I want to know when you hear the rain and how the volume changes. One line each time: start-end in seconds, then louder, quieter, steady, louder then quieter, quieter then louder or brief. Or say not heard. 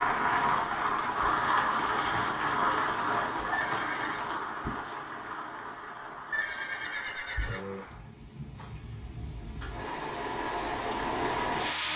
0.0-11.9 quieter then louder.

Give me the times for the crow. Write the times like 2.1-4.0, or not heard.
not heard.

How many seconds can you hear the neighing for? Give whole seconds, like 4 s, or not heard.
2 s.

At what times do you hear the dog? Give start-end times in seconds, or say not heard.
not heard.